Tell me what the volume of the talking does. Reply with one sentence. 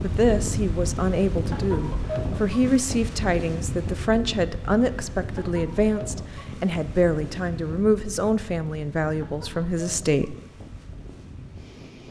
The loudness of the talking stays about the same.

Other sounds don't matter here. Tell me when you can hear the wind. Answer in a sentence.
The wind can be heard from 0.0 to 12.0 s.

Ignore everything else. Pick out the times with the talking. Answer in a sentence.
You can hear the talking from 0.0 to 10.3 s.